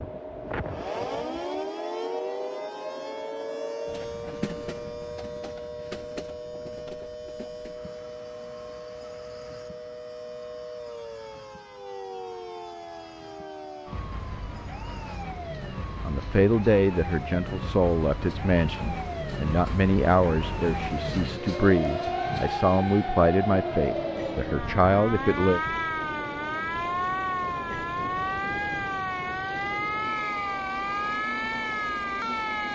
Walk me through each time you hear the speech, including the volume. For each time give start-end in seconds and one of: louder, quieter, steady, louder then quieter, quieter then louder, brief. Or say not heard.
16.0-25.6 steady.